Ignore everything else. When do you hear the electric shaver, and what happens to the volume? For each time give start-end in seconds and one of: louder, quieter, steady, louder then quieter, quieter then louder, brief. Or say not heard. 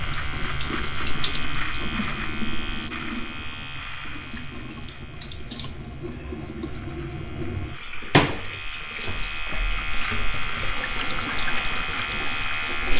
0.0-12.9 quieter then louder.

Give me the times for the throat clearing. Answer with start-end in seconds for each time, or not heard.
not heard.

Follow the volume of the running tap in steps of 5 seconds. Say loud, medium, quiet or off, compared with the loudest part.
medium, loud, loud.